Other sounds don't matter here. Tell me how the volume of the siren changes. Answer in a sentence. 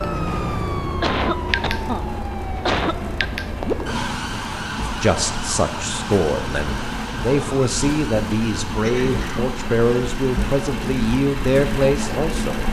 The volume of the siren goes down.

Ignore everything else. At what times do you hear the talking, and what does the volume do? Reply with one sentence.
You can hear the talking from 4.8 to 12.6 s, at a steady volume.